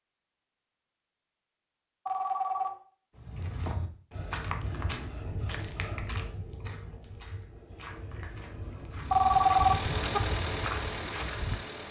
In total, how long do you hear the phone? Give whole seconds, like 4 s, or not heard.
2 s.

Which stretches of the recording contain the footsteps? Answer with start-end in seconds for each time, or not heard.
3.1-11.7.